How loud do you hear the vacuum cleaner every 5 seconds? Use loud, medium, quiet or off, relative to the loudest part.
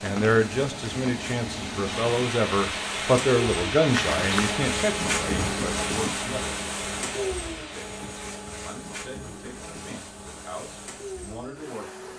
loud, loud, medium.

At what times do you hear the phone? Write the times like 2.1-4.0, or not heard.
3.9-4.6.